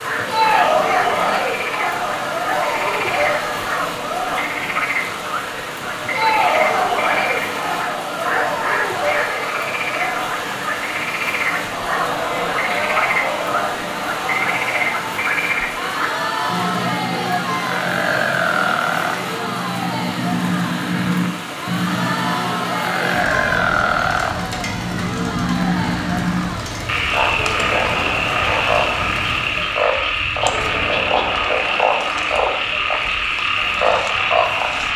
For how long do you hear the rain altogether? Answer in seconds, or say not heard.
30 s.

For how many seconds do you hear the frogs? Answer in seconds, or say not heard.
35 s.